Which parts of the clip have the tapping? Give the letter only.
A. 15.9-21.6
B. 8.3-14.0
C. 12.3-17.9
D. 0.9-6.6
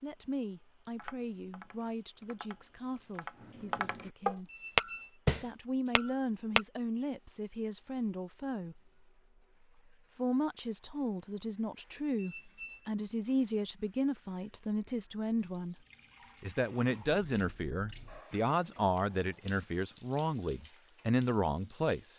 D.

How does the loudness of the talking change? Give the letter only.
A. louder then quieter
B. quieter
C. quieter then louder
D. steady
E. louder
E.